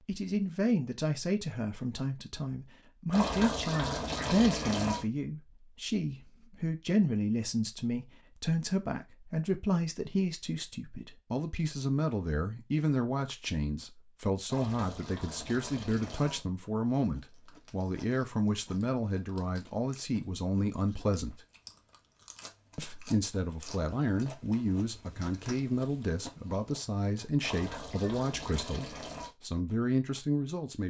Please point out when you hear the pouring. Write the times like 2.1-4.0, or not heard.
3.1-5.0, 14.5-16.4, 27.4-29.3.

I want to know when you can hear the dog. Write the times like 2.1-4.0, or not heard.
not heard.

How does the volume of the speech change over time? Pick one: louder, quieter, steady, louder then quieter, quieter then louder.
steady.